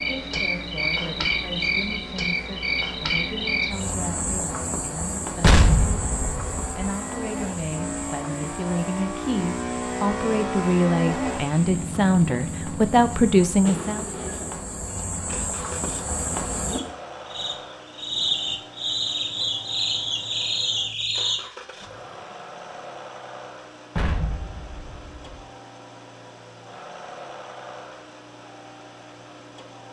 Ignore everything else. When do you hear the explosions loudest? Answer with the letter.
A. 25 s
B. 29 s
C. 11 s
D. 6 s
D.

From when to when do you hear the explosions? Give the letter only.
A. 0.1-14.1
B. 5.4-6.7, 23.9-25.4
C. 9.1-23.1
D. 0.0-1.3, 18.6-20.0
B.